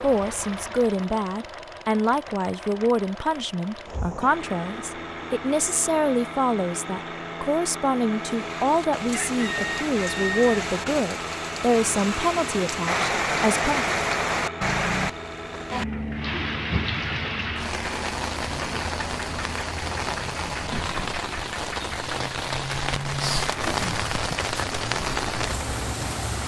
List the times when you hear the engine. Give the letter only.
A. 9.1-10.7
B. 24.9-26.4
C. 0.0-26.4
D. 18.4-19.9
C.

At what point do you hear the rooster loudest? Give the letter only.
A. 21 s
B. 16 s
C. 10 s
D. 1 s
C.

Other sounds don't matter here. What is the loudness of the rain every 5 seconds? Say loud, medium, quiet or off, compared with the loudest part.
off, medium, loud, loud, loud, loud.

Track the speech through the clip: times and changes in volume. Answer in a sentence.
You can hear the speech from 0.0 to 13.9 s, at a steady volume.